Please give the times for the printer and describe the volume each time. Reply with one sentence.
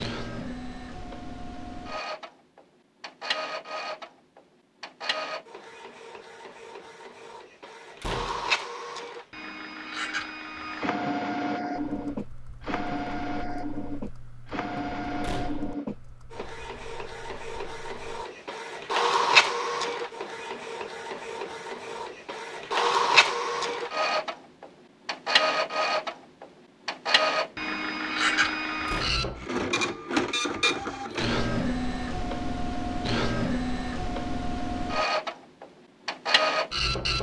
You can hear the printer from 0.0 to 37.1 s, getting louder.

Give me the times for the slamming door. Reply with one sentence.
The slamming door can be heard from 8.0 to 8.6 s, from 15.2 to 15.8 s and from 28.9 to 29.3 s.